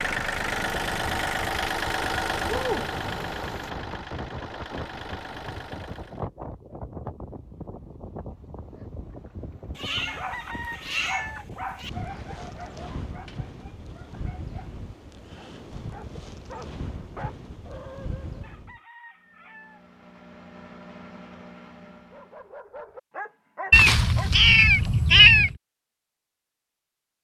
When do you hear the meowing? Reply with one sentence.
The meowing can be heard from 2.4 to 3.7 s, from 9.8 to 11.9 s and from 23.7 to 25.6 s.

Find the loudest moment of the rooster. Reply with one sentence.
The volume of the rooster peaks at 11 seconds.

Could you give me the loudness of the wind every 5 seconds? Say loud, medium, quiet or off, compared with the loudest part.
loud, loud, loud, loud, off, off.